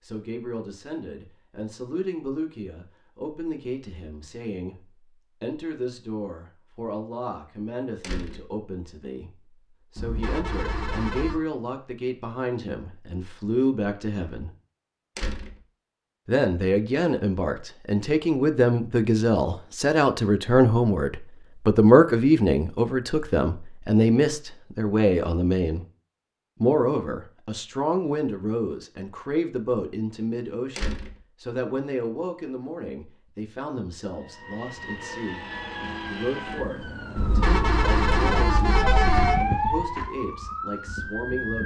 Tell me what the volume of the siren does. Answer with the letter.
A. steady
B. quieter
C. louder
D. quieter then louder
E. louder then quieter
E.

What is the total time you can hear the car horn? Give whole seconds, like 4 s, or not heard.
4 s.